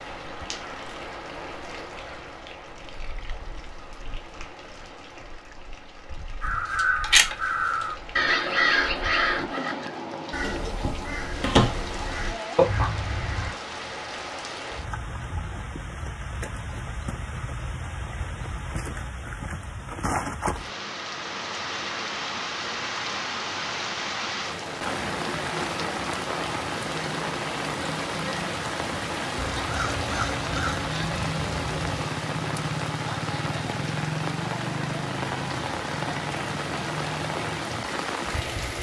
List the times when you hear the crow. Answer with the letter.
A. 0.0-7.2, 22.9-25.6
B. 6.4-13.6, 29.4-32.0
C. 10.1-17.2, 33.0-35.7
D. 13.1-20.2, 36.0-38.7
B.